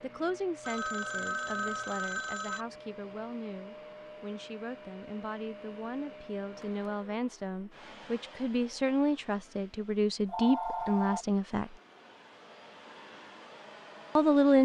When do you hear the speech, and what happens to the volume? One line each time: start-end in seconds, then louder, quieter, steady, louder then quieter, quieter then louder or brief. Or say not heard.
0.0-11.8 louder
14.2-14.6 brief.